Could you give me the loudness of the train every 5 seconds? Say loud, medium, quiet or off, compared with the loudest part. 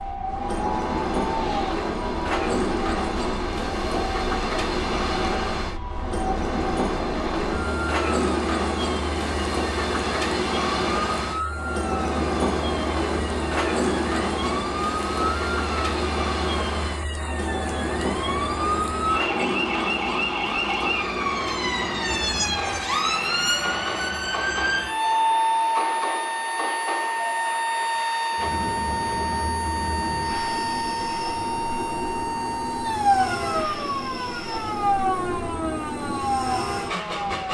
loud, loud, loud, loud, medium, medium, medium, medium.